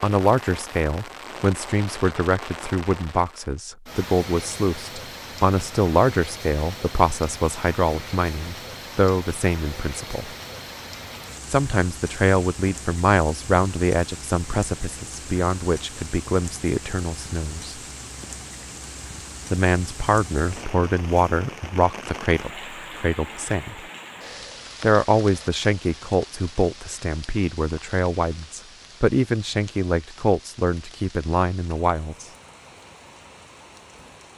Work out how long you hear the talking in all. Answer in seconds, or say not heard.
28 s.